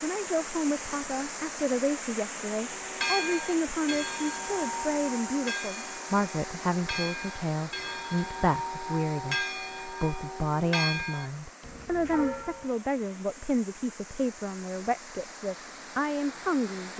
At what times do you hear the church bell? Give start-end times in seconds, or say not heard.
2.6-12.7.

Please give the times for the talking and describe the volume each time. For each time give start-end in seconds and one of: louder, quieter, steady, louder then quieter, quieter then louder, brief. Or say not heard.
0.0-16.9 steady.